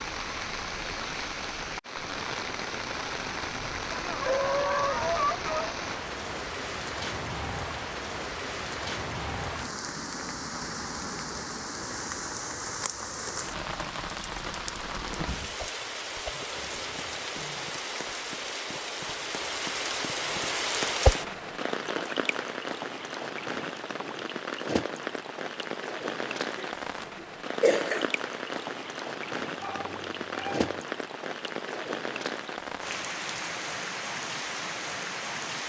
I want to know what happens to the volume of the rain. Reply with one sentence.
The loudness of the rain stays about the same.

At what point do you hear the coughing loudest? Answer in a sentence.
The loudest moment of the coughing is at 28 seconds.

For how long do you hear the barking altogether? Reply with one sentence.
You can hear the barking for 3 seconds altogether.